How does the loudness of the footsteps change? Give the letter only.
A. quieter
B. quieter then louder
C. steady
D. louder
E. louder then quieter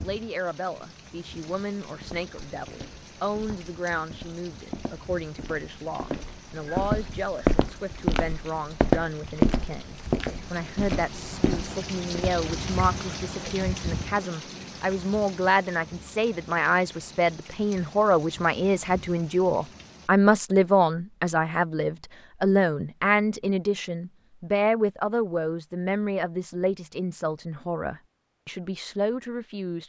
E.